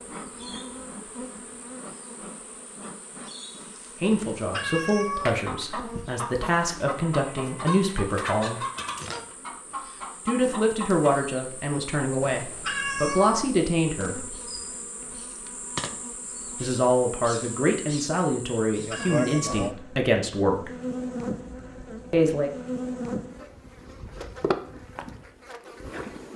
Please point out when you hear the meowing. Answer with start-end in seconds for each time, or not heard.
4.1-5.4, 12.2-13.5, 18.7-19.8.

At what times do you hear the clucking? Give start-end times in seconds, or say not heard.
5.2-11.2.